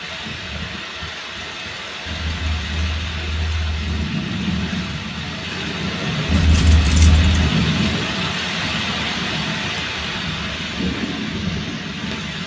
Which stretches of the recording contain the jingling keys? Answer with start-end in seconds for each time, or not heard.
2.0-4.0, 6.2-7.5.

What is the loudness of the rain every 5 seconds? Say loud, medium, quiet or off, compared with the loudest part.
medium, loud, loud.